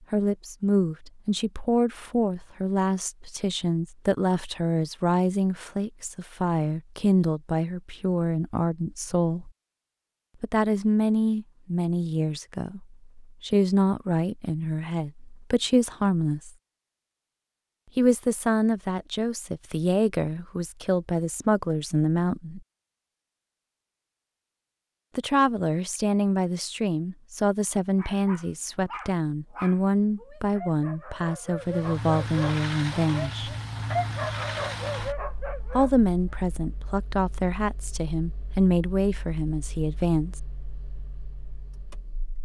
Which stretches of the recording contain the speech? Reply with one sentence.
You can hear the speech from 0.1 to 9.5 s, from 10.4 to 16.5 s, from 17.9 to 22.6 s, from 25.1 to 33.5 s and from 35.8 to 40.4 s.